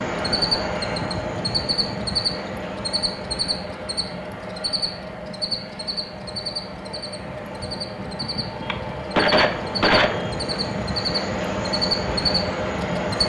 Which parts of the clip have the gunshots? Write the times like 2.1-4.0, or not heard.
8.7-10.5.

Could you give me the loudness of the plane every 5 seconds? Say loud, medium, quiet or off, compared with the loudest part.
loud, medium, loud.